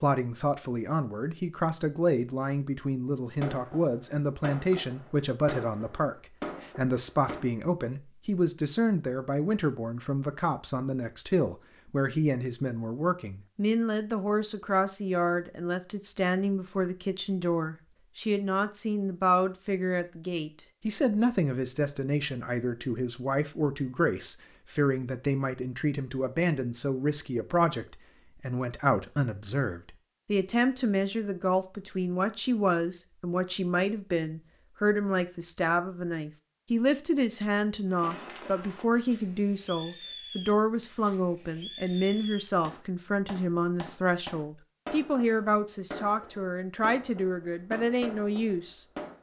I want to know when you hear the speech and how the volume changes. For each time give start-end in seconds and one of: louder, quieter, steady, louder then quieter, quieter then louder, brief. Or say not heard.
0.0-48.9 steady.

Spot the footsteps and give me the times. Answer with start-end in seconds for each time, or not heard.
not heard.